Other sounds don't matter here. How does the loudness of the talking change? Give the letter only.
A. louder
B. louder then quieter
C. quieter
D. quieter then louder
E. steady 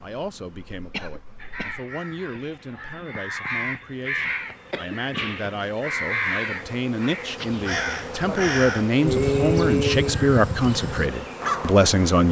A.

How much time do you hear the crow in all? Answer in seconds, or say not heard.
10 s.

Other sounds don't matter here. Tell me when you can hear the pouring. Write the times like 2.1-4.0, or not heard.
not heard.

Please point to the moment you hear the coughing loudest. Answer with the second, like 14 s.
9 s.